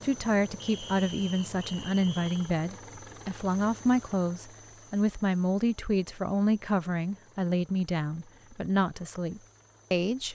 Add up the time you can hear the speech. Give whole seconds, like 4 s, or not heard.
10 s.